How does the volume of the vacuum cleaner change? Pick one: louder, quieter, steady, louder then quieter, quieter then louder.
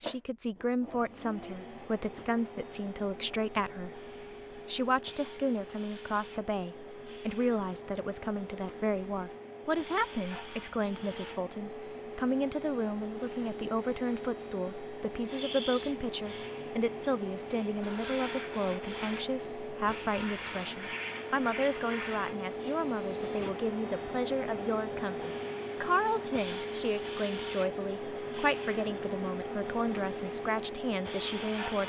louder.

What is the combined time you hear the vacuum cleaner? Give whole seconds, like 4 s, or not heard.
32 s.